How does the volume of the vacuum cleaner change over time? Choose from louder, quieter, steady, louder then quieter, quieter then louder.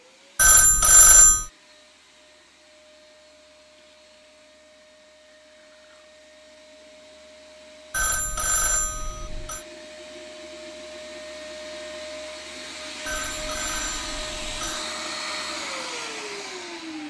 louder.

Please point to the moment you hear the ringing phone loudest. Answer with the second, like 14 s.
1 s.